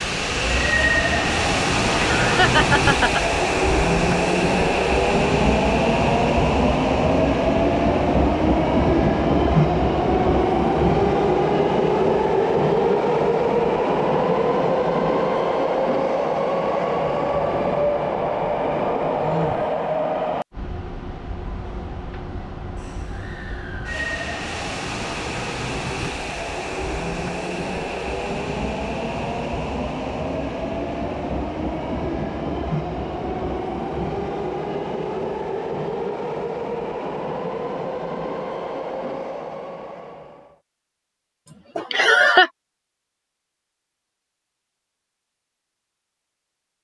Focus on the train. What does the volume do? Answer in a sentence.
The loudness of the train goes down.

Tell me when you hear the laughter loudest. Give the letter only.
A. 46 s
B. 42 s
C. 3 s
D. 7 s
B.